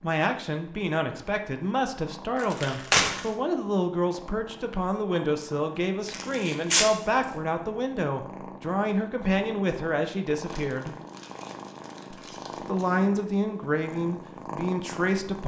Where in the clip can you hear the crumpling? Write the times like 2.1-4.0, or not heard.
2.4-3.2, 6.0-6.9, 10.4-12.9.